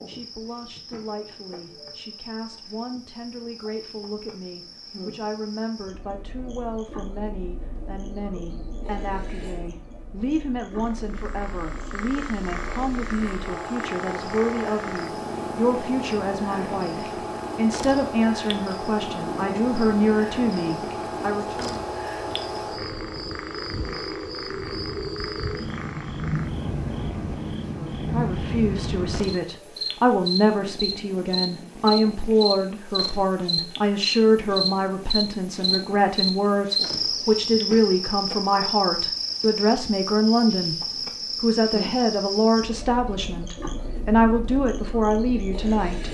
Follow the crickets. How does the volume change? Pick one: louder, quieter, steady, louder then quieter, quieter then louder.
louder.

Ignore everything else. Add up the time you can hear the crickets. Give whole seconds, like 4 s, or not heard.
46 s.